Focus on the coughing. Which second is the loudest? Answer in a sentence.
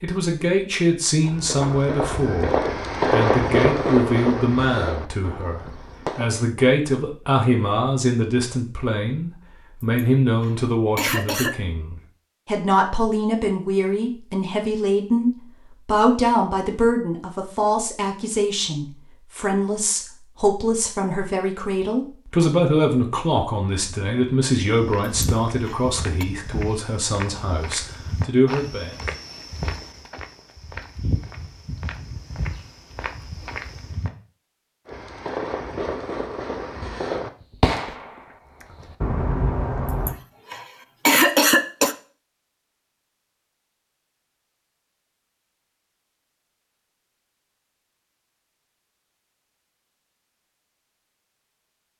The loudest moment of the coughing is at 41 seconds.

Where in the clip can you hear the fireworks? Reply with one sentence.
You can hear the fireworks from 1.2 to 6.5 s and from 34.9 to 40.1 s.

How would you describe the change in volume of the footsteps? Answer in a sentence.
The loudness of the footsteps stays about the same.